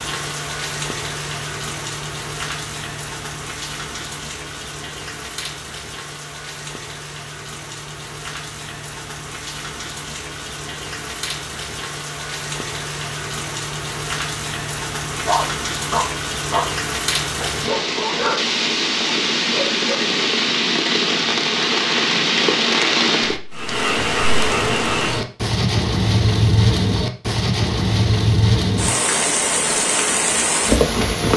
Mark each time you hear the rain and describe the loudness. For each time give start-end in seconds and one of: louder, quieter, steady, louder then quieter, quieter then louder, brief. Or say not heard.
0.0-31.3 louder.